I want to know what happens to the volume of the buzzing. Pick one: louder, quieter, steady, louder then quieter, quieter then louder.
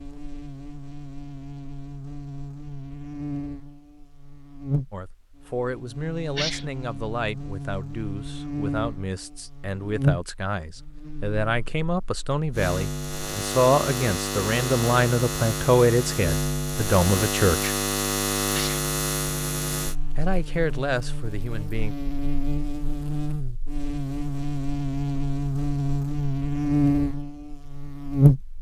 louder.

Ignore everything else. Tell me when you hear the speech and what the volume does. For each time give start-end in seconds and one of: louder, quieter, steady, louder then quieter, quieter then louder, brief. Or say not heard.
4.9-17.8 louder
20.1-21.9 brief.